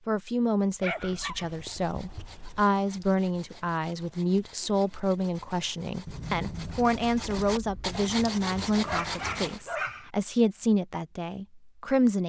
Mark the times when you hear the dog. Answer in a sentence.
You can hear the dog from 0.8 to 2.6 s and from 8.8 to 10.1 s.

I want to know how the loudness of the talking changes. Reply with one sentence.
The volume of the talking stays about the same.